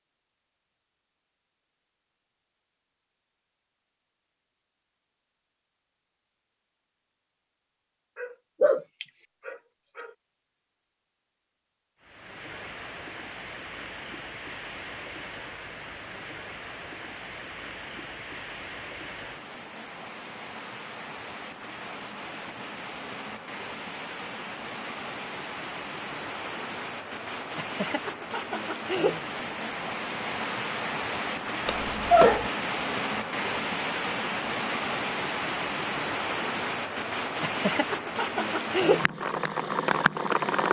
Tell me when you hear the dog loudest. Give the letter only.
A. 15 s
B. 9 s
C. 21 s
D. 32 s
D.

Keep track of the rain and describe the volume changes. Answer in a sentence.
The volume of the rain goes up.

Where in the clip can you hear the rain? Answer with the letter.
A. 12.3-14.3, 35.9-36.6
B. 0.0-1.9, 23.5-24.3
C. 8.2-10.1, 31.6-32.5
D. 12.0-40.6
D.